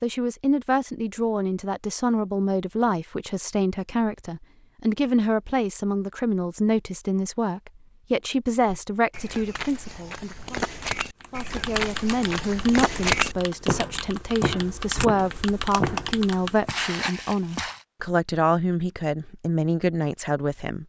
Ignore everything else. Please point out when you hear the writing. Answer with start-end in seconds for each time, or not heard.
not heard.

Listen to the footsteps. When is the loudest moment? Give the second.
13 s.